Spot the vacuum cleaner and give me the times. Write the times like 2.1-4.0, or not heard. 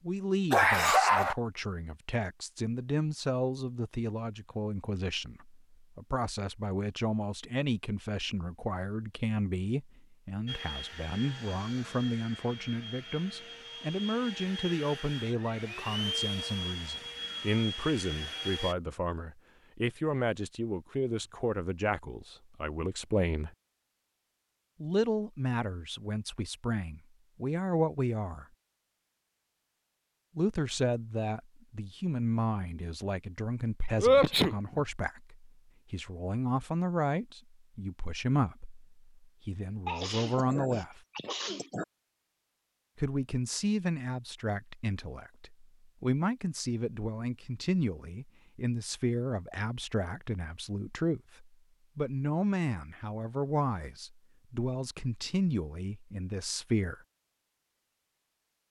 10.4-18.8.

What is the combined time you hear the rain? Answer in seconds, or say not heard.
not heard.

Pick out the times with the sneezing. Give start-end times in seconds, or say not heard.
0.5-1.4, 34.0-34.8, 39.9-41.9.